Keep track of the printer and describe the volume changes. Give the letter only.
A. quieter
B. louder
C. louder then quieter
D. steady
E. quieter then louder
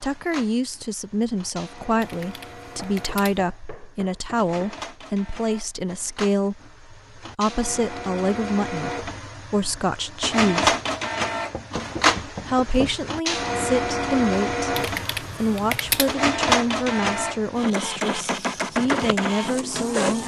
B.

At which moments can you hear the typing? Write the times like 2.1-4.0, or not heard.
2.0-3.4, 14.8-16.1.